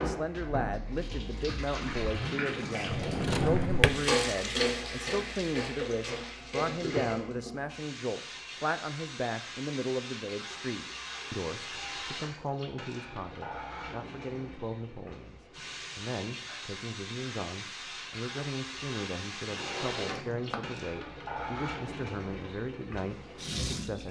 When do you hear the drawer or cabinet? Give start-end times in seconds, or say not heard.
2.9-3.9, 19.4-20.8.